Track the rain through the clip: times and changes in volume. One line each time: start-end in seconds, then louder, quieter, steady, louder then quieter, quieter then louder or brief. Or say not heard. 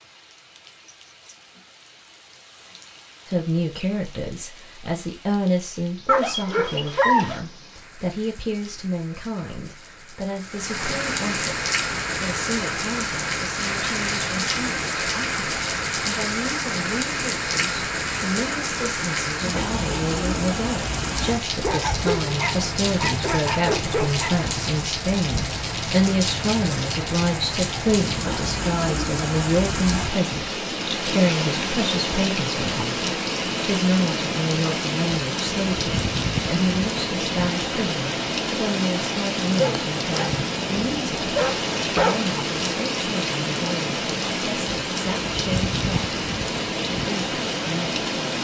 0.0-48.3 louder.